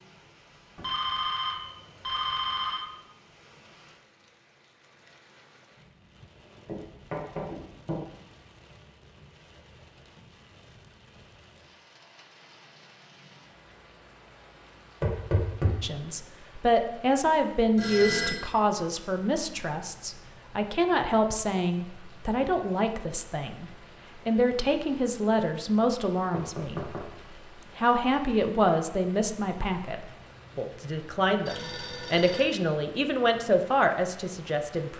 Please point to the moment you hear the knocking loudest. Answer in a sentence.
The volume of the knocking peaks at 15 seconds.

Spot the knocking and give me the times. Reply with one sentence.
You can hear the knocking from 6.7 to 8.1 s, from 15.0 to 15.8 s and from 26.3 to 27.1 s.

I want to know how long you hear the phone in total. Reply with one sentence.
You can hear the phone for 4 seconds altogether.